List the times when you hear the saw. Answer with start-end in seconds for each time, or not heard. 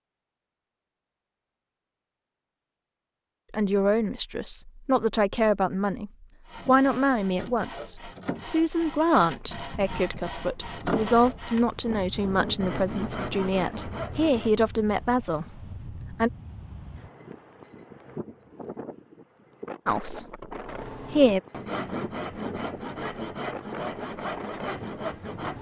6.5-14.6, 20.6-25.5.